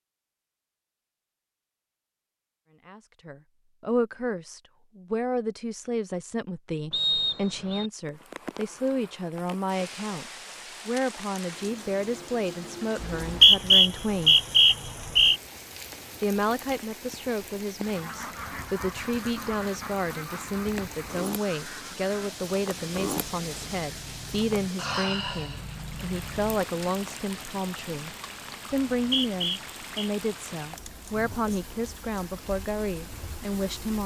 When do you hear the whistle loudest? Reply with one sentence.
The loudest moment of the whistle is at 14 seconds.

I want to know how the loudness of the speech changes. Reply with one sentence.
The volume of the speech stays about the same.